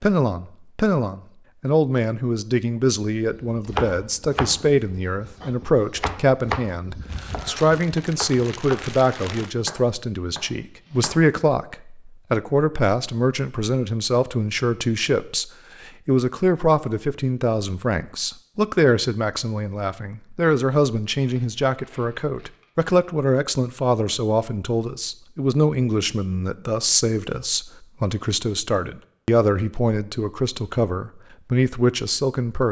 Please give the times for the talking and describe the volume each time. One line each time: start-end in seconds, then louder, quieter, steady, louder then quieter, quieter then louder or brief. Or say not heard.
0.0-32.6 steady.